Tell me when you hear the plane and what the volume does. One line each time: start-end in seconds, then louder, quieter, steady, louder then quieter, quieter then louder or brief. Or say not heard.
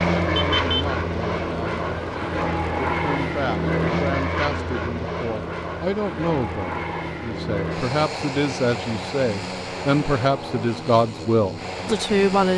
0.0-12.5 quieter.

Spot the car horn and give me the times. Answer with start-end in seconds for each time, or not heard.
0.3-0.9.